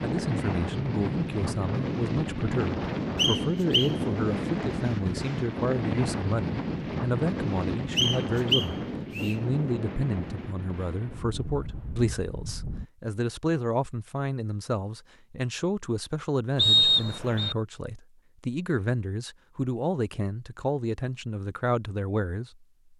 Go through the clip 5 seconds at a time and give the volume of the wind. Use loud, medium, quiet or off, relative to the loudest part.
loud, loud, medium, off, off.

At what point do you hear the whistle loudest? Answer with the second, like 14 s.
17 s.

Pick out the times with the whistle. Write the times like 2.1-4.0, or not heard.
3.1-4.0, 8.0-9.3, 16.6-17.6.